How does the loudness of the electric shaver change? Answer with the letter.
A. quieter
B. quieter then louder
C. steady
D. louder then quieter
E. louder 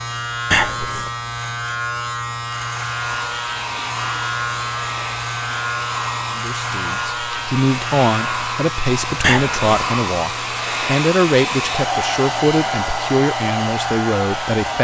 A.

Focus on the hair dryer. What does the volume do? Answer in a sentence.
The loudness of the hair dryer goes up.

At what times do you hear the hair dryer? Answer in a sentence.
The hair dryer can be heard from 2.8 to 14.7 s.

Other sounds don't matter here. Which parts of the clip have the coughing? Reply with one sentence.
The coughing can be heard from 0.5 to 1.1 s and from 9.2 to 9.9 s.